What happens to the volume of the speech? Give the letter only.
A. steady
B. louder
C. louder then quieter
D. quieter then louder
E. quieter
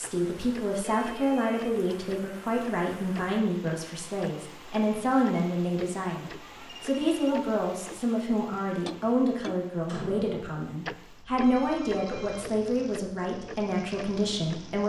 A.